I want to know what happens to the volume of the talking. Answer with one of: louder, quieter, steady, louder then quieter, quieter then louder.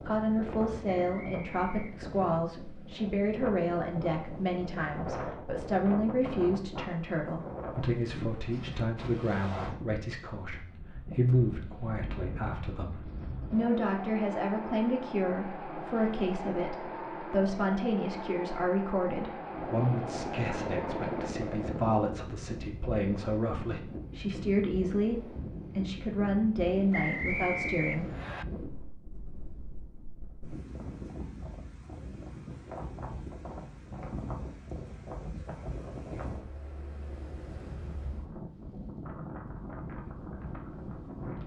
steady.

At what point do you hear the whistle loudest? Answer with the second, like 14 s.
27 s.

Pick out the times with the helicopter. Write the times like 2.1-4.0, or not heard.
19.4-22.1.